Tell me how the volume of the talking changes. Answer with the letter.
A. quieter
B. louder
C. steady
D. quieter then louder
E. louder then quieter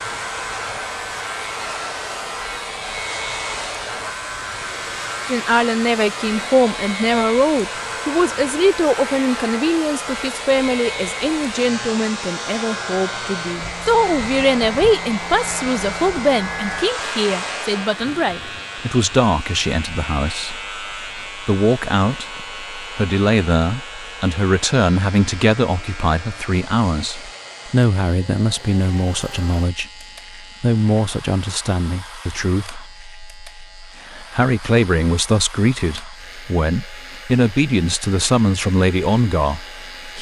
C.